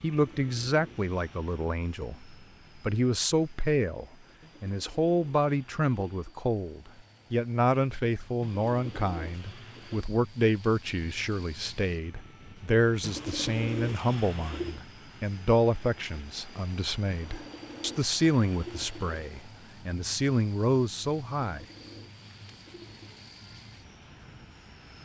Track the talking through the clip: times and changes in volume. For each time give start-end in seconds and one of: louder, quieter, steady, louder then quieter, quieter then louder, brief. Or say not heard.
0.0-21.6 steady.